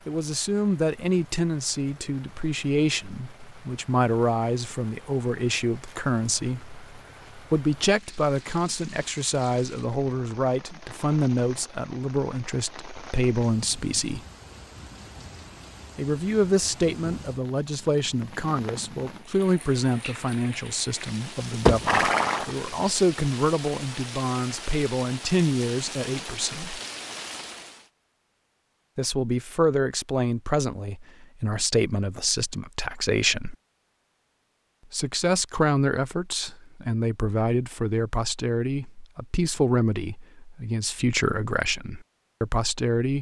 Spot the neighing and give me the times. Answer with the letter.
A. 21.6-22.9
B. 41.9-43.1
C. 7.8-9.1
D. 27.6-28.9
A.